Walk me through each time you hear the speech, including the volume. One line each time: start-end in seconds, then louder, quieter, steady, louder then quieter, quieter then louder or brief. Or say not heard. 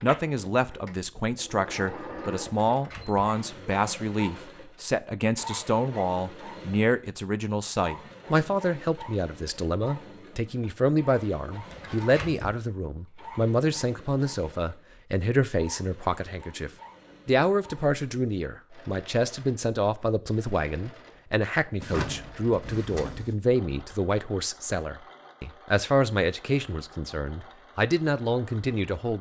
0.0-29.1 steady.